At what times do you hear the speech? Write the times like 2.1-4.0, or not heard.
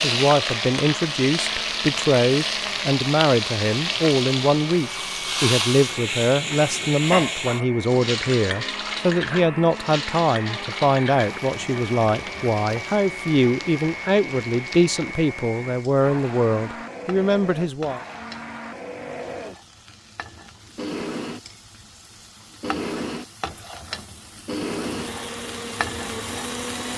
0.0-18.0.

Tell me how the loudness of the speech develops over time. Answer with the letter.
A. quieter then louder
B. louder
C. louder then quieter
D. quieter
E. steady
E.